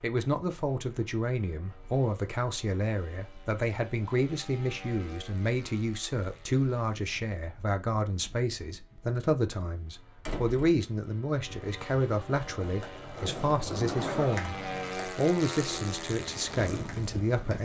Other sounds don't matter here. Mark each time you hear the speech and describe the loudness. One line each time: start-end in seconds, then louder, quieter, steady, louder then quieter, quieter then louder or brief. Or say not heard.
0.0-17.6 steady.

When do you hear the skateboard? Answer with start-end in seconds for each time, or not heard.
12.4-17.6.